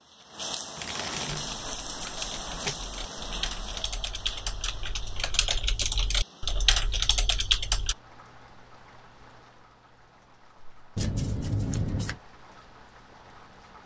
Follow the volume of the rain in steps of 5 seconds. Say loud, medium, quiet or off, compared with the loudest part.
loud, quiet, quiet.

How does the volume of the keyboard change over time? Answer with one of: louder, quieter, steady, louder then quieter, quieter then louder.
louder.